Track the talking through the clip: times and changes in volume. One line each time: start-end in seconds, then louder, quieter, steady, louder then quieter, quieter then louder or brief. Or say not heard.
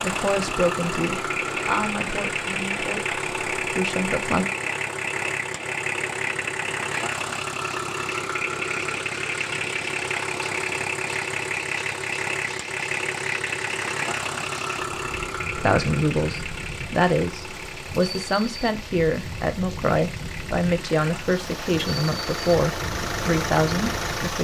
0.0-4.5 quieter then louder
15.6-24.3 steady.